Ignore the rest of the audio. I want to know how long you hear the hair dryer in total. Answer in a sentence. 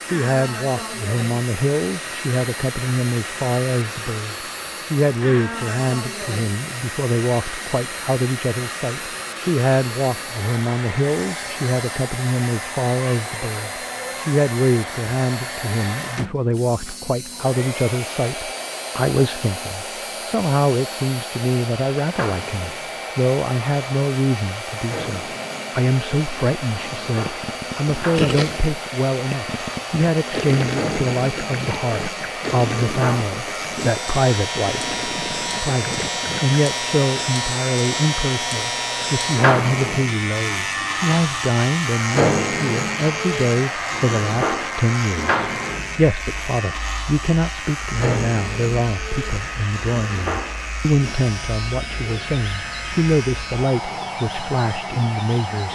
The hair dryer can be heard for 56 seconds in total.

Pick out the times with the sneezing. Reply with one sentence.
You can't hear the sneezing here.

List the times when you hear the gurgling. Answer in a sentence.
You can hear the gurgling from 27.2 to 36.6 s.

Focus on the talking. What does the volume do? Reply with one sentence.
The loudness of the talking stays about the same.